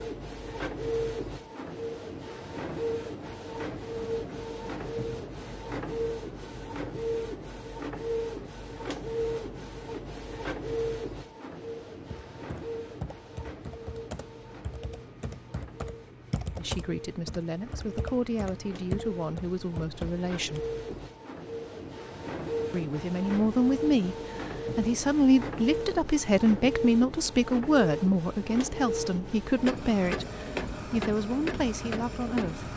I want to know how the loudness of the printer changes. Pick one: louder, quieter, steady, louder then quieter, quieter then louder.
quieter then louder.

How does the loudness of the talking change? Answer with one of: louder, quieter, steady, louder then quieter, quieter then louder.
louder then quieter.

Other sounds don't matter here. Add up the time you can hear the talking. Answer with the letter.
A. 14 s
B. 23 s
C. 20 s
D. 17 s
A.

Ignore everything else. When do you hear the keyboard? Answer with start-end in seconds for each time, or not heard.
12.1-21.0.